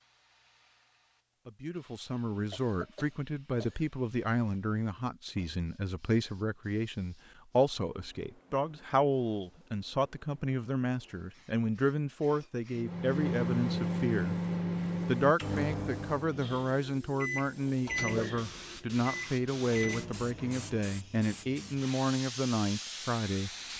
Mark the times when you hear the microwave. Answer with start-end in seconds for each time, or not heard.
12.8-20.9.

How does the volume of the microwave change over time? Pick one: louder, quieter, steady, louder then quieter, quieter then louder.
quieter.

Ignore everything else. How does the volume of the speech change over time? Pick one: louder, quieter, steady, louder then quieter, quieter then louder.
steady.